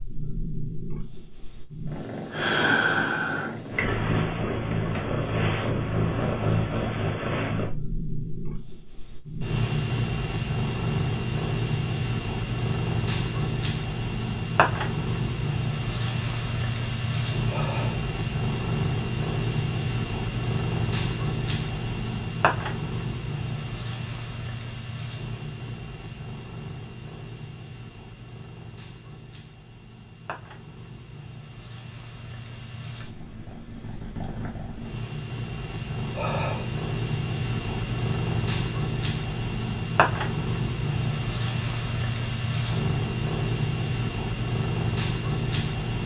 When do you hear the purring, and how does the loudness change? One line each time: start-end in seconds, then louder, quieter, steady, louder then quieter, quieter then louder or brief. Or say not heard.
0.0-46.0 quieter then louder.